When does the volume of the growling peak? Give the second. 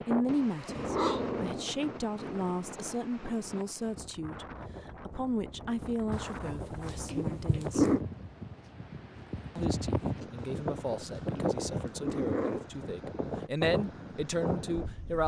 8 s.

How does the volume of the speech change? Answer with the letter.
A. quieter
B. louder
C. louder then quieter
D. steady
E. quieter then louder
E.